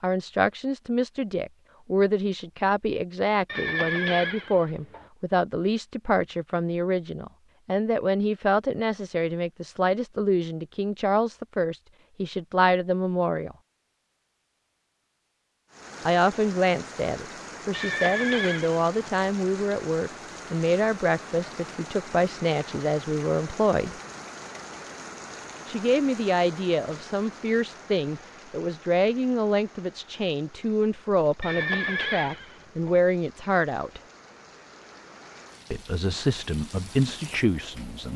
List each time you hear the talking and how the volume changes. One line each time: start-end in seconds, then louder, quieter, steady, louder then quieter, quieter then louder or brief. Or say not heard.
0.0-13.6 steady
16.1-23.9 steady
25.6-34.0 steady
35.7-38.1 brief.